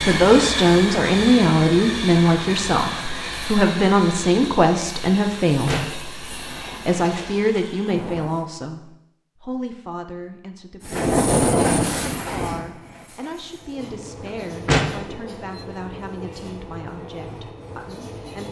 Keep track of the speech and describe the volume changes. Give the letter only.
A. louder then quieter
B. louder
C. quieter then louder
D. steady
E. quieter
E.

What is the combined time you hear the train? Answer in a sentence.
The train can be heard for 16 seconds in total.